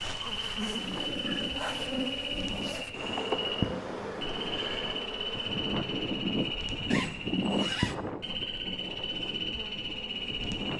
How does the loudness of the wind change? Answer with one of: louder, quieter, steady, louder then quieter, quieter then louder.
louder then quieter.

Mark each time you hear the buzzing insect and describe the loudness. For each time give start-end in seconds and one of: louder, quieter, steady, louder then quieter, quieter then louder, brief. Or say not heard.
0.0-10.7 quieter.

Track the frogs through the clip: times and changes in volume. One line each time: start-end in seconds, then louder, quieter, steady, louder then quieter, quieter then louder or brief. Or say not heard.
0.0-10.7 steady.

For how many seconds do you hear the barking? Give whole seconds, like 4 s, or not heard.
not heard.